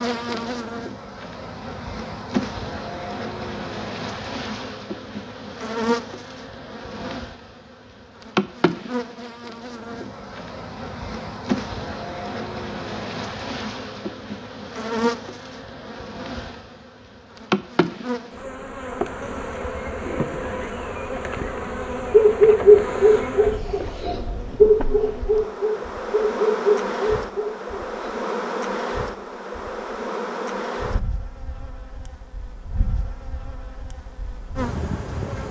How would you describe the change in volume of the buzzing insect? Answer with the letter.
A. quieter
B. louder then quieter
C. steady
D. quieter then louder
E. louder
C.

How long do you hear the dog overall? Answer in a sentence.
You can hear the dog for 6 seconds altogether.